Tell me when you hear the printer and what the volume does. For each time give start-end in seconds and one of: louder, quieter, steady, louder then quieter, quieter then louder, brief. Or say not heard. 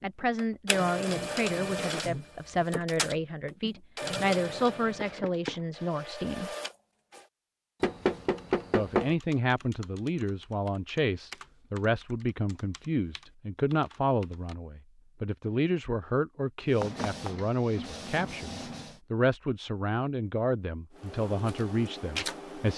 0.0-7.2 quieter
16.6-19.0 brief
20.9-22.7 brief.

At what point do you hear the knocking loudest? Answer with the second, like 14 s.
9 s.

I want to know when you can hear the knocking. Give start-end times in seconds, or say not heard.
5.0-5.6, 7.8-9.2, 16.8-17.4.